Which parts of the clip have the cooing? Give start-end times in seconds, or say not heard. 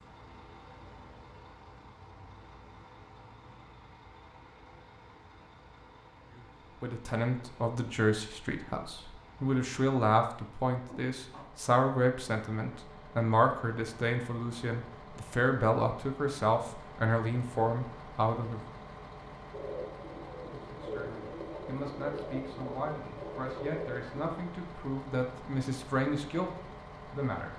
19.5-24.4.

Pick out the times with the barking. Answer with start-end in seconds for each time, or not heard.
not heard.